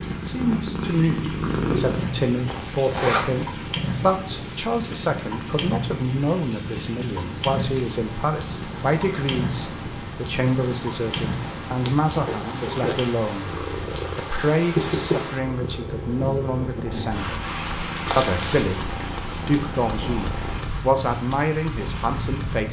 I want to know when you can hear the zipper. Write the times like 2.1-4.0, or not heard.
2.5-3.5, 11.8-12.9, 18.1-18.7.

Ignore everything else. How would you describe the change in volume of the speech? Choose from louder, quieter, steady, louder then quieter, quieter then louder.
steady.